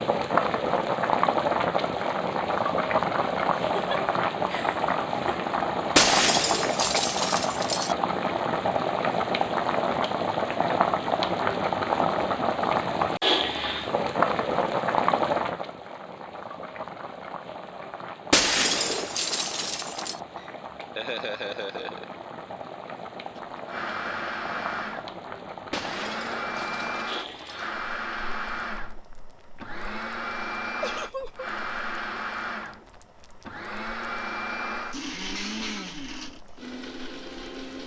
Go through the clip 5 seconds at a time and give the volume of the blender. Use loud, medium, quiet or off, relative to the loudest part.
off, off, off, off, loud, loud, loud, loud.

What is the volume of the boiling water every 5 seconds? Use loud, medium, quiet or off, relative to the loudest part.
loud, loud, loud, medium, quiet, quiet, quiet, quiet.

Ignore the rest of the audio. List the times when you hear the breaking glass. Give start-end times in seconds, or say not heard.
6.0-8.0, 18.3-20.1, 25.7-27.7.